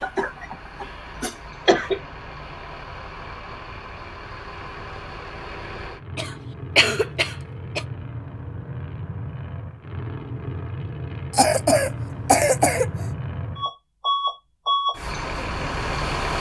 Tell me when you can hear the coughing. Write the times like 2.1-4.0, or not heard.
0.0-2.0, 6.2-7.8, 11.3-13.1.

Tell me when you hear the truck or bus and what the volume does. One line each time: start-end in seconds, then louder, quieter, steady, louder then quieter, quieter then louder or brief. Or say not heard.
0.0-16.3 louder.